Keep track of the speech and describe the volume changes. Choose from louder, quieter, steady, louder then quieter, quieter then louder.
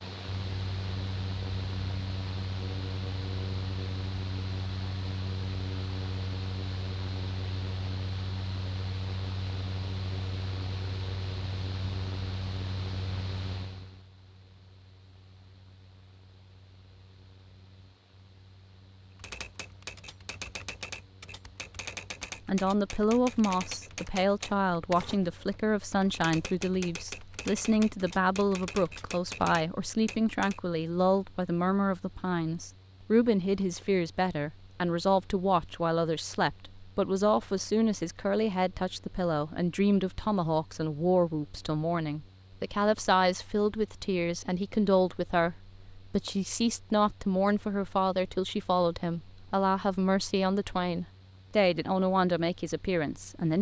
steady.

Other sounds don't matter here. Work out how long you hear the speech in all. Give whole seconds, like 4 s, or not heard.
31 s.